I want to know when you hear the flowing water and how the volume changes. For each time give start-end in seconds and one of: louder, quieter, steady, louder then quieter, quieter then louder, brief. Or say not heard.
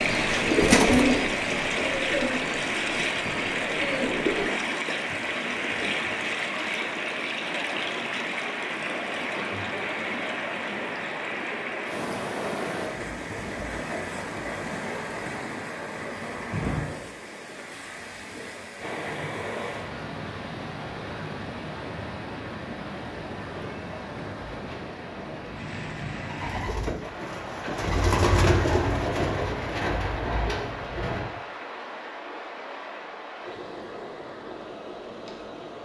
0.0-35.8 quieter.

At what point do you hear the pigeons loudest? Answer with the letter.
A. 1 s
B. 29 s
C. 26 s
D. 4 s
A.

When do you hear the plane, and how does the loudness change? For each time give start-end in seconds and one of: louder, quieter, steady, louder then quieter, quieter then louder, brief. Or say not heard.
not heard.